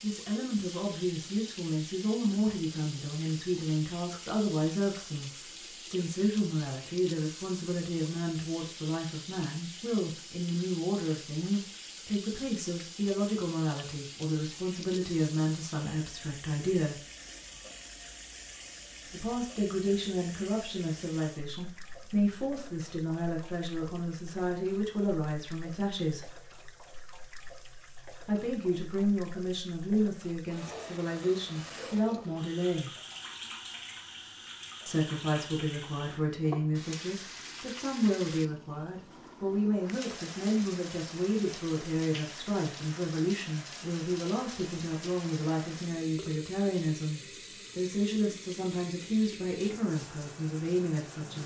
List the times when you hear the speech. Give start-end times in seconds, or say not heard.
0.0-17.0, 19.1-26.3, 28.2-32.9, 34.9-51.4.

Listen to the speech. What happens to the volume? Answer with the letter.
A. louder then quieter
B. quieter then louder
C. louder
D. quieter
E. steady
E.